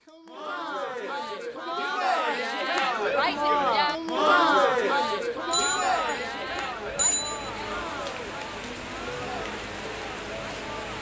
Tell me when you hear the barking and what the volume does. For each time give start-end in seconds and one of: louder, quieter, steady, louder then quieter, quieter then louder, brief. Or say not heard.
not heard.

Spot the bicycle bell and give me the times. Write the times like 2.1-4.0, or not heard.
5.5-6.2, 7.0-7.5.